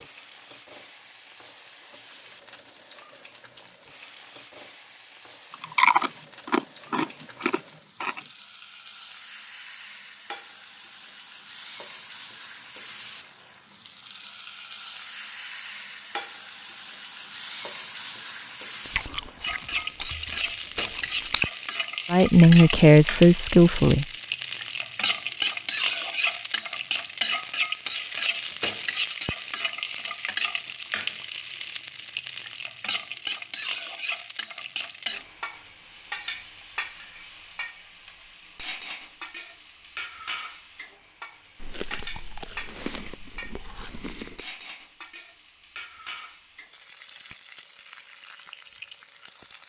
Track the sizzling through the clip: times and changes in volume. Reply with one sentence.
You can hear the sizzling from 0.0 to 49.6 s, getting louder then quieter.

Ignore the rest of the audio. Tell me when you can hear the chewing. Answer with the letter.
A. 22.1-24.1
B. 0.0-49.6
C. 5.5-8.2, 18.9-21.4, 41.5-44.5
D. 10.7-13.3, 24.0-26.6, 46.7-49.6
C.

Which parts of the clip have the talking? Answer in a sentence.
You can hear the talking from 22.1 to 24.1 s.